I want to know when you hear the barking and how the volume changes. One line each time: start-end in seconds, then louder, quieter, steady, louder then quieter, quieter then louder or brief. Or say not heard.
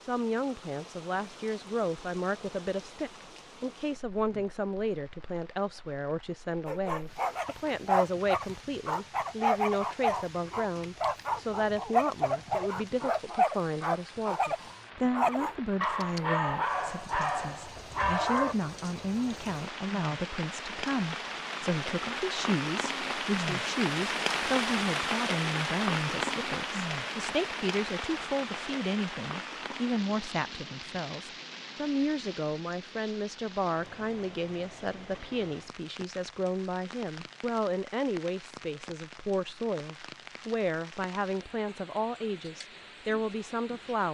6.7-18.6 steady.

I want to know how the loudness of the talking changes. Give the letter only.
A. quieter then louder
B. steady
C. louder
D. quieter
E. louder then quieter
B.